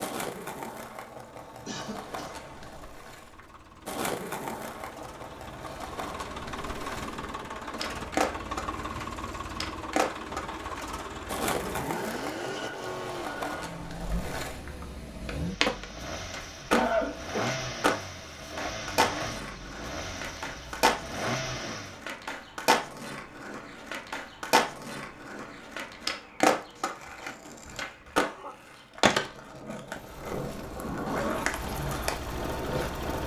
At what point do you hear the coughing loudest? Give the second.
17 s.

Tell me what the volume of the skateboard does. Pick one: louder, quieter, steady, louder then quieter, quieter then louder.
louder.